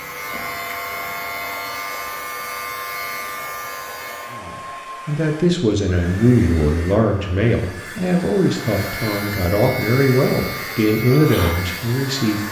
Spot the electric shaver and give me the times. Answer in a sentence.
The electric shaver can be heard from 0.0 to 4.4 s and from 8.6 to 12.4 s.